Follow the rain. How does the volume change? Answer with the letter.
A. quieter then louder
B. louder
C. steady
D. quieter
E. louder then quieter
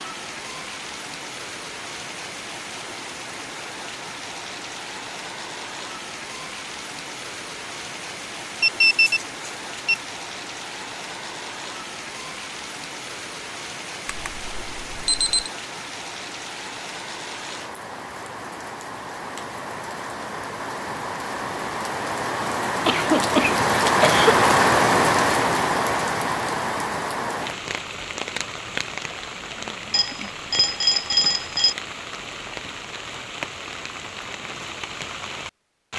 E.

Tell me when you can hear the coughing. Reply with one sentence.
The coughing can be heard from 22.9 to 24.4 s.